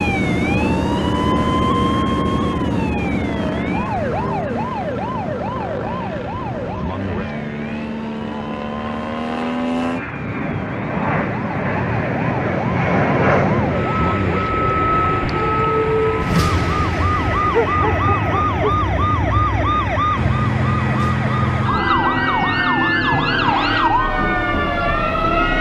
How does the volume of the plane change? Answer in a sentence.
The loudness of the plane goes up, then down.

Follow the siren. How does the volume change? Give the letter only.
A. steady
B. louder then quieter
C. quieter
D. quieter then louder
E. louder
D.